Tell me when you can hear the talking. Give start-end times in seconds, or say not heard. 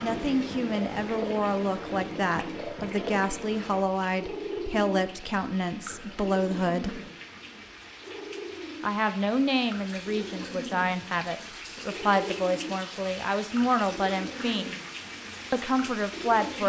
0.0-7.0, 8.8-14.8, 15.5-16.6.